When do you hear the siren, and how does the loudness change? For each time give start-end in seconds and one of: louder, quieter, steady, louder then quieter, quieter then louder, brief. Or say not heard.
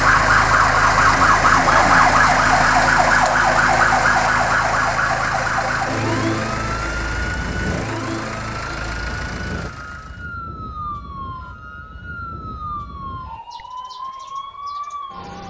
0.0-15.4 quieter.